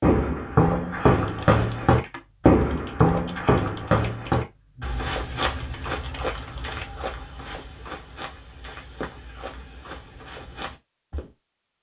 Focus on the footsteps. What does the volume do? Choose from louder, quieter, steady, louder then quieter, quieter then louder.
quieter.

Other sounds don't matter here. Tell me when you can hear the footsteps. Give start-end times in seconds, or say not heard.
0.0-11.3.